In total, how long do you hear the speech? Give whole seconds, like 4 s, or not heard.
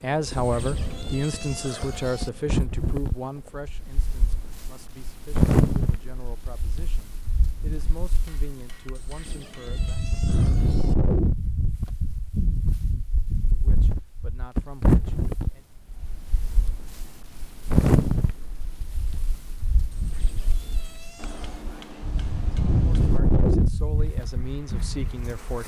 15 s.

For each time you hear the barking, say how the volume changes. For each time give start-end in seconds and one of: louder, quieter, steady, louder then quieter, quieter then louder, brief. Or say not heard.
not heard.